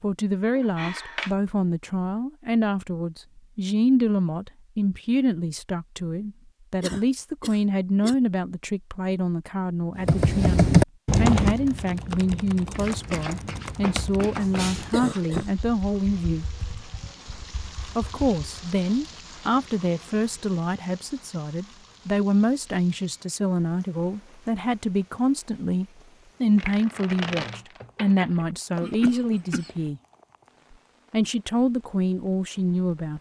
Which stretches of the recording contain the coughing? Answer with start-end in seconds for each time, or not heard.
6.8-8.2, 14.9-15.5, 28.8-29.8.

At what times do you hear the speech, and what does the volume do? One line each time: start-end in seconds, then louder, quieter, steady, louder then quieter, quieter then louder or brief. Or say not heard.
0.0-16.4 steady
17.9-30.0 steady
31.1-33.1 brief.